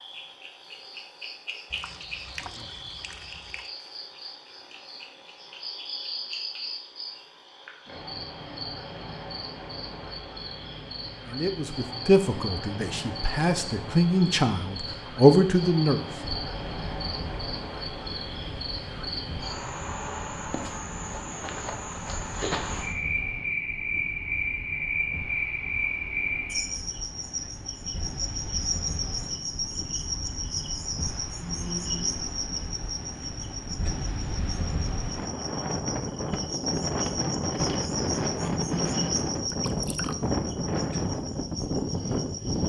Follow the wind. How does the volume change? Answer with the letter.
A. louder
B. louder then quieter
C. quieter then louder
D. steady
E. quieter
A.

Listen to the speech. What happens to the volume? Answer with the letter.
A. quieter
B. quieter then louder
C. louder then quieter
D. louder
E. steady
B.